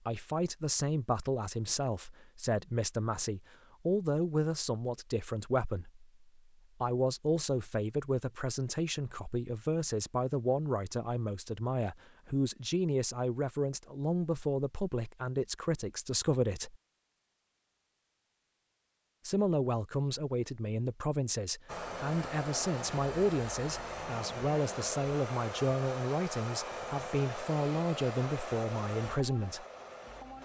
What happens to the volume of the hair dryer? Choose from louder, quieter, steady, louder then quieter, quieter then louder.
steady.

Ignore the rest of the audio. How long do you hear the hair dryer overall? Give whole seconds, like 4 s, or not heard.
9 s.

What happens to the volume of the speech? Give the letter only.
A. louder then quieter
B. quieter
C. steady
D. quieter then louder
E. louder
C.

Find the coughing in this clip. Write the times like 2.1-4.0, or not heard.
not heard.